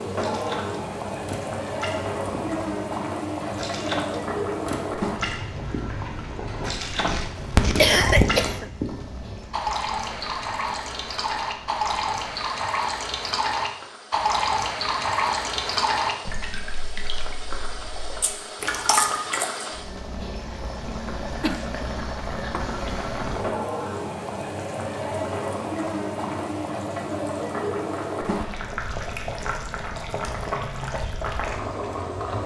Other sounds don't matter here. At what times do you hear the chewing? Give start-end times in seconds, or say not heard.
6.8-8.6, 18.2-19.6.